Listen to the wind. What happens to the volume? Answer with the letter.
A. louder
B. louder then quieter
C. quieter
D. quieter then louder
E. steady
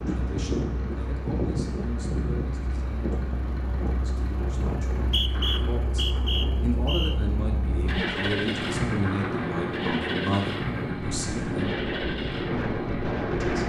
D.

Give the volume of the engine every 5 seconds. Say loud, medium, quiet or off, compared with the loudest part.
medium, loud, loud.